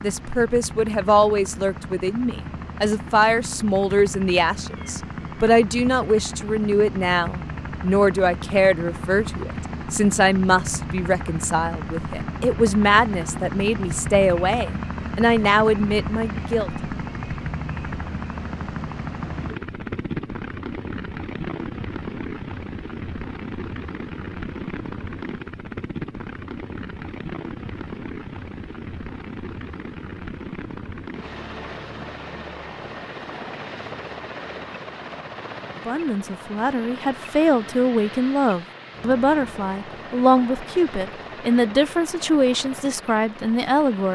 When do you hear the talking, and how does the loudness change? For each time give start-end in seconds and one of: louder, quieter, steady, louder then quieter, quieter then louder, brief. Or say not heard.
0.0-16.7 steady
35.9-44.0 steady.